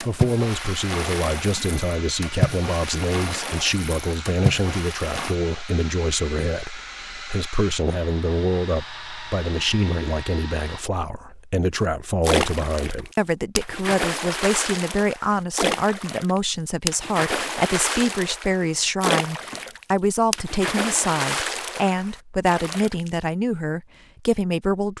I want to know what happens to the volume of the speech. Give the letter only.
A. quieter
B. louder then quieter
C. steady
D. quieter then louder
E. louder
C.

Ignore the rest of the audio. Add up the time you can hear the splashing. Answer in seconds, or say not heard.
16 s.